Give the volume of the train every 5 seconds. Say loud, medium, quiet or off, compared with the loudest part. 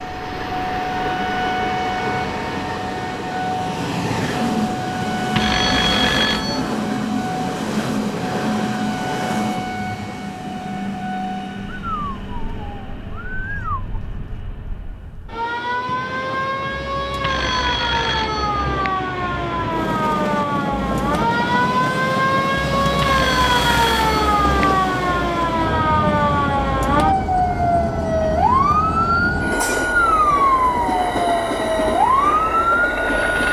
loud, loud, medium, medium, loud, loud, loud.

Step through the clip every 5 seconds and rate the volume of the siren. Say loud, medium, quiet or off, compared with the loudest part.
medium, medium, quiet, medium, loud, loud, loud.